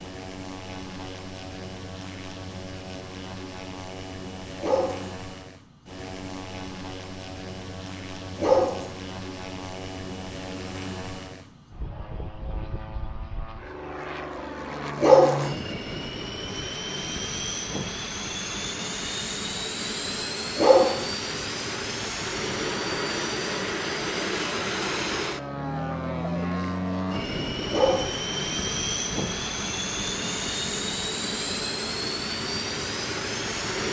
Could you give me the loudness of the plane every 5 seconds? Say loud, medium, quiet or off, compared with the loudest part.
medium, medium, medium, loud, loud, loud, loud.